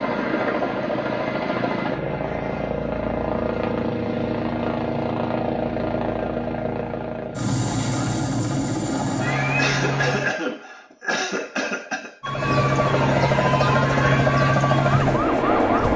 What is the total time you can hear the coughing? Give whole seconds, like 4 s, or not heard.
3 s.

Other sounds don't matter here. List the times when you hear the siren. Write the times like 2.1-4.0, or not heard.
12.2-15.9.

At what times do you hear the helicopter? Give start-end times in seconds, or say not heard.
0.0-10.3, 12.2-15.9.